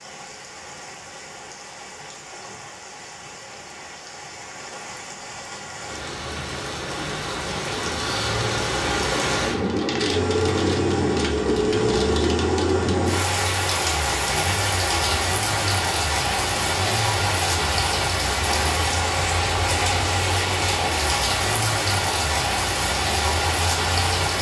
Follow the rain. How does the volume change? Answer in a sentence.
The volume of the rain goes up.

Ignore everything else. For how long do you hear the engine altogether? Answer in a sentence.
The engine can be heard for 14 seconds in total.